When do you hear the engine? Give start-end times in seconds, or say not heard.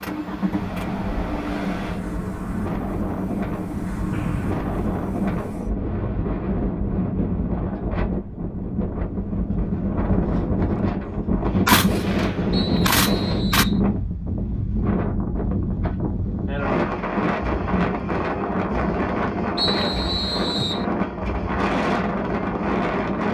0.0-5.5.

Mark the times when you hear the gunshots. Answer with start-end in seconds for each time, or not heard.
11.7-13.7.